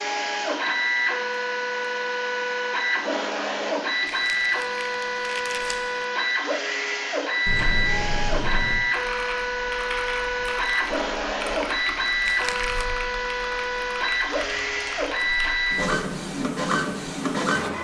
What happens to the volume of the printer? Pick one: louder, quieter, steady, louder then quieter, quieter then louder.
steady.